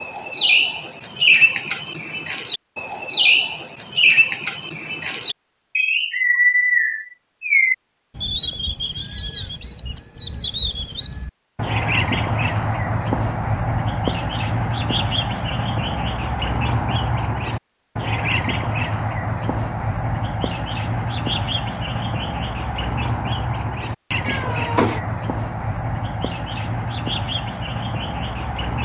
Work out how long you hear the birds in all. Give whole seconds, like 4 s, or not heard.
29 s.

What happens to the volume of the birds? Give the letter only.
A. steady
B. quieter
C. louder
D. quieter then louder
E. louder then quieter
B.